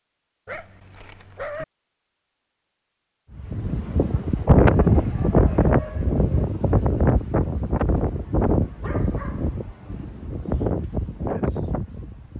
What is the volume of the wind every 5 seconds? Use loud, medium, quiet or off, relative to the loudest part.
loud, loud, medium.